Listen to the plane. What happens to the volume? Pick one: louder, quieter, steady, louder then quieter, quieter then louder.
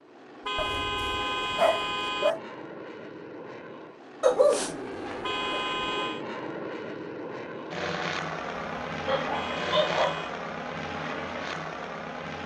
louder.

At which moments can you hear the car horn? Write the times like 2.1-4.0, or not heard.
0.5-2.4, 5.2-6.2, 9.3-10.3.